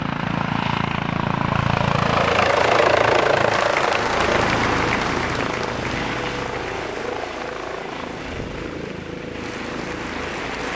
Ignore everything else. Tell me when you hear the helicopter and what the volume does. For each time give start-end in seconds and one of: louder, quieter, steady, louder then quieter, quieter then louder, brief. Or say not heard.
0.0-10.7 quieter.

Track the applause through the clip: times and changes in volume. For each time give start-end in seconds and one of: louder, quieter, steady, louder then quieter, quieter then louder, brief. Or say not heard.
3.5-10.7 quieter then louder.